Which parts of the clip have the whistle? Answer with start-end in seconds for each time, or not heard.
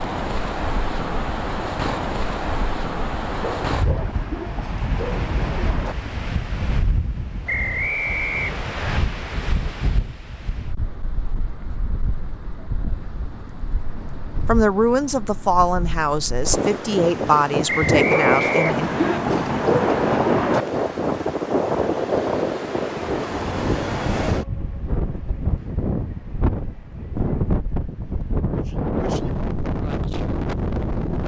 7.5-9.0, 17.6-19.2.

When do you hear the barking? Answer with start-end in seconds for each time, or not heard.
3.4-6.1, 18.1-20.8.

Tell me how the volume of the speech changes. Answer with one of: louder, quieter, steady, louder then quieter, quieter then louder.
steady.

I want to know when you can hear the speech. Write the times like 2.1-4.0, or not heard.
14.4-18.9.